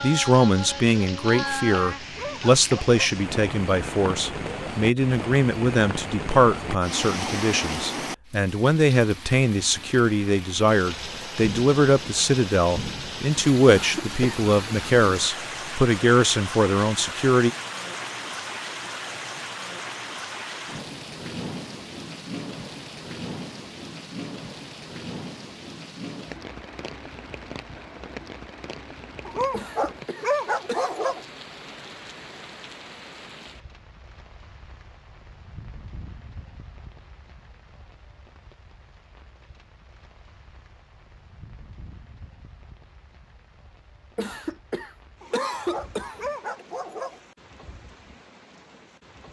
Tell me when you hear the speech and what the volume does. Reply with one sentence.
The speech can be heard from 0.0 to 17.5 s, at a steady volume.